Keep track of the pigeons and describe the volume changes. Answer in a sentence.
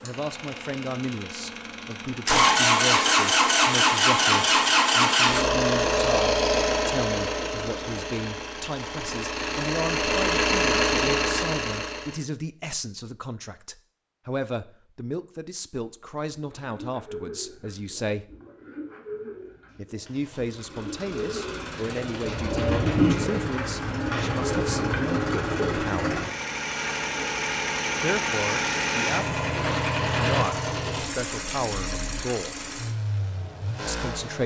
The loudness of the pigeons goes up.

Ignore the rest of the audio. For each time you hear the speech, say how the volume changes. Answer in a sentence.
You can hear the speech from 0.0 to 18.2 s, at a steady volume; from 19.8 to 26.2 s, at a steady volume; from 28.0 to 32.5 s, at a steady volume; and briefly from 33.9 to 34.4 s.